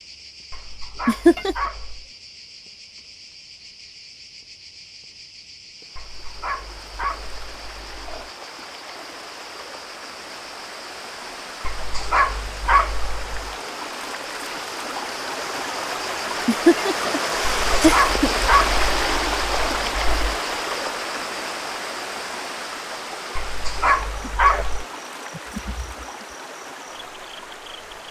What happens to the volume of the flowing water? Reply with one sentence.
The loudness of the flowing water goes up, then down.